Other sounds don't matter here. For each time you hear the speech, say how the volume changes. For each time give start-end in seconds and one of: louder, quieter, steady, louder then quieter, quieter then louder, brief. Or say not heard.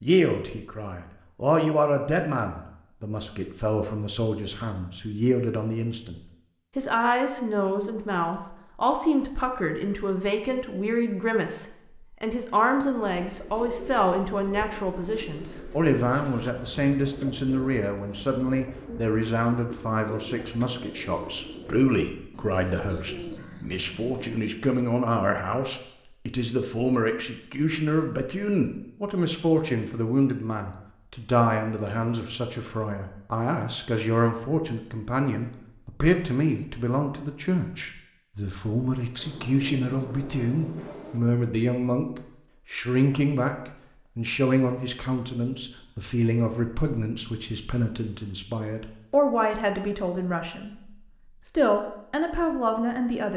0.0-53.3 steady.